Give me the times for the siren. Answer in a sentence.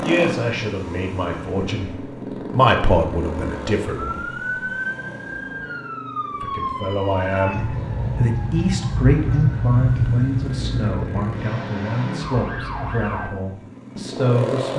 You can hear the siren from 4.0 to 13.3 s.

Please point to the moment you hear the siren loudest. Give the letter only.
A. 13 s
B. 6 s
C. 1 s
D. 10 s
D.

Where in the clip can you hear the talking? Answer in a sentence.
The talking can be heard from 0.0 to 4.3 s and from 6.4 to 14.7 s.